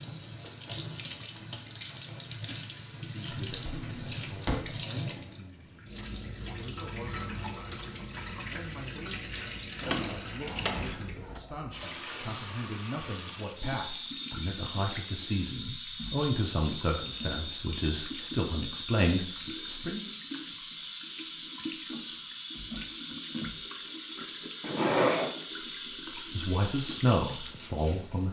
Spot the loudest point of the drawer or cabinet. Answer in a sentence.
The loudest moment of the drawer or cabinet is at 25 seconds.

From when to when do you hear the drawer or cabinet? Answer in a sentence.
The drawer or cabinet can be heard from 3.3 to 4.8 s, from 9.8 to 11.4 s and from 24.6 to 25.4 s.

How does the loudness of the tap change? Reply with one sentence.
The loudness of the tap stays about the same.